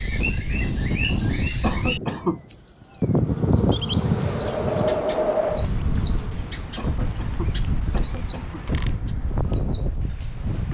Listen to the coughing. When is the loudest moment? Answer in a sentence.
The volume of the coughing peaks at 2 seconds.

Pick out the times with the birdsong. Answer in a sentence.
The birdsong can be heard from 0.0 to 10.6 s.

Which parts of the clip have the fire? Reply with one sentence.
You can't hear the fire here.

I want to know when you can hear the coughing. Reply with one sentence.
You can hear the coughing from 1.6 to 2.4 s and from 6.8 to 8.6 s.